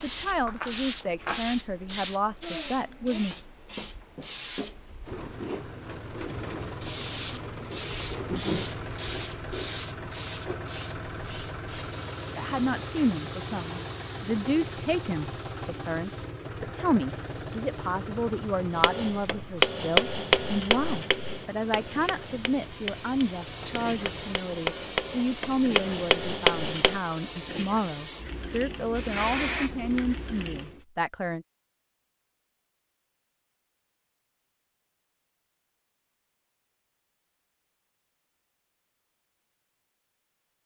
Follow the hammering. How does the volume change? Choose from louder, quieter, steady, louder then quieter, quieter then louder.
quieter then louder.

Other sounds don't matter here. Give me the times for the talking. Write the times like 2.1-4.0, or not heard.
0.0-3.4, 12.3-31.4.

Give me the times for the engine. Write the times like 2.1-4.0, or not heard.
5.0-24.4.